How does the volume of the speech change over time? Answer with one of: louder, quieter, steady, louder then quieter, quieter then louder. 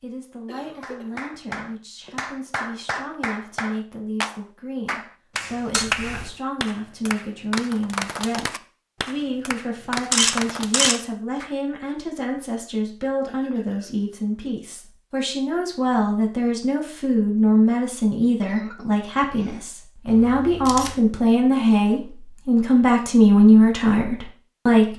louder.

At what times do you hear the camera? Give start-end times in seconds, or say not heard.
5.7-6.3, 10.1-10.9, 20.1-21.0.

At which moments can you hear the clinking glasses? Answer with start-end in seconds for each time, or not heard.
not heard.